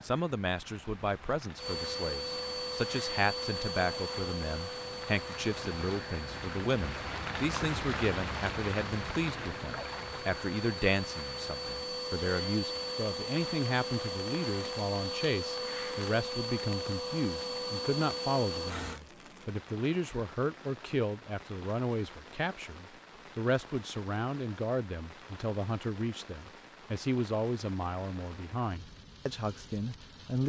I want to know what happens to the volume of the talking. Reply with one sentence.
The loudness of the talking stays about the same.